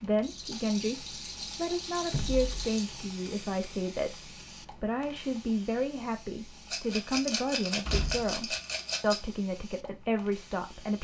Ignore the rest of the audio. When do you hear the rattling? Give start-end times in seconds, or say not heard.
0.2-2.9, 6.7-9.2.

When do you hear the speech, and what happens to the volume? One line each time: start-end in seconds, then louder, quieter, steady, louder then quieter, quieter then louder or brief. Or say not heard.
0.0-10.9 steady.